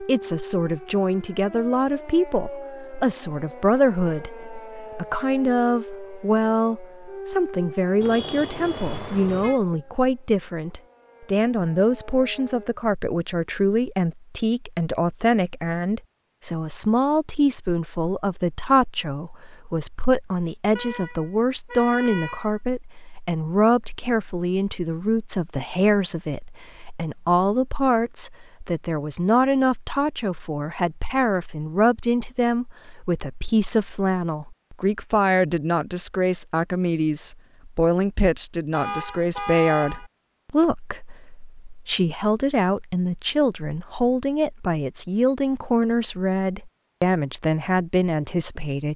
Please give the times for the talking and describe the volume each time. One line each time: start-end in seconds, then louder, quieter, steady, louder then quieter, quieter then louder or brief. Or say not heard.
0.0-48.9 steady.